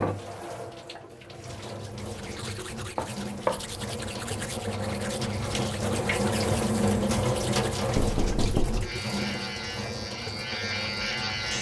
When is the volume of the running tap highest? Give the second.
7 s.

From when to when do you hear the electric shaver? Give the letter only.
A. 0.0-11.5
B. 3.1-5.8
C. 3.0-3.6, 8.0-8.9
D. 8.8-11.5
D.